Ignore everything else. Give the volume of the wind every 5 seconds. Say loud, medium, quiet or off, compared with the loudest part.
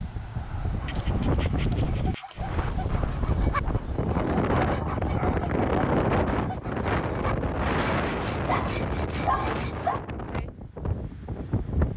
loud, loud, medium.